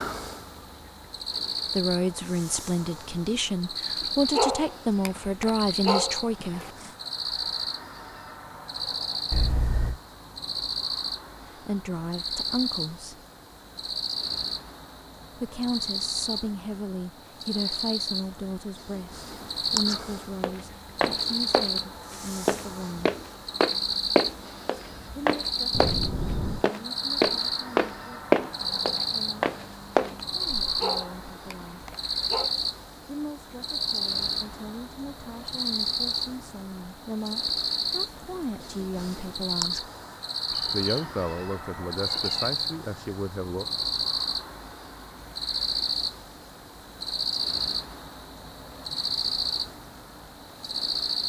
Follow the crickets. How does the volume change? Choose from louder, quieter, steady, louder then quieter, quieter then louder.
steady.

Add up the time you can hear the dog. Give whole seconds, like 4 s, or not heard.
5 s.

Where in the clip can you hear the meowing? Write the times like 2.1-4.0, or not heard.
9.3-10.0, 25.7-26.6, 40.5-42.5.